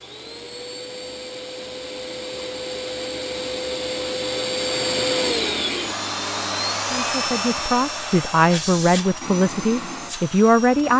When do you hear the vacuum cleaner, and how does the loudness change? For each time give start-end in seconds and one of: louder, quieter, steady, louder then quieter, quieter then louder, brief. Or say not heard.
0.0-10.9 louder then quieter.